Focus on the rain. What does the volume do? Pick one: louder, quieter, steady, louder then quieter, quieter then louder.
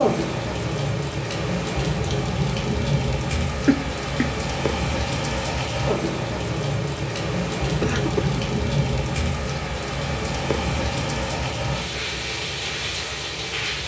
steady.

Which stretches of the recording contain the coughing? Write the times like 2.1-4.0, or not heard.
3.6-4.3, 7.8-8.4.